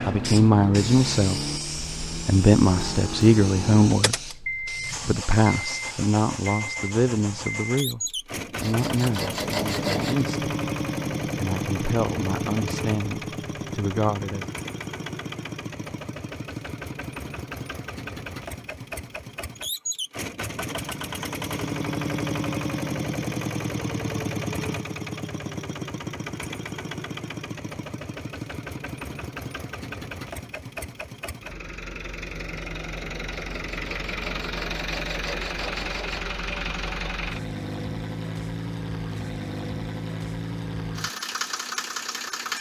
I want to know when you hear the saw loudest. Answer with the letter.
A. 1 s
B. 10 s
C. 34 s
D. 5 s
B.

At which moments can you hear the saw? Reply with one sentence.
The saw can be heard from 8.6 to 10.2 s and from 33.4 to 36.3 s.